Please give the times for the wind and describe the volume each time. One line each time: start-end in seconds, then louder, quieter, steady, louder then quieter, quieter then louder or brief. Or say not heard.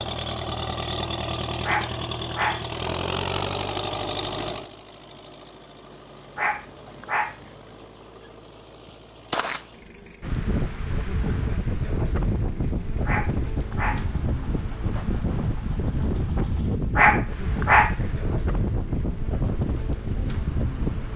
10.2-21.1 steady.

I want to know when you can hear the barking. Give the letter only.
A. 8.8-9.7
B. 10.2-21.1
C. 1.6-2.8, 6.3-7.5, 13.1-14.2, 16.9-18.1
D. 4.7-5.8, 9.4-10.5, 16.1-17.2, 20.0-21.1
C.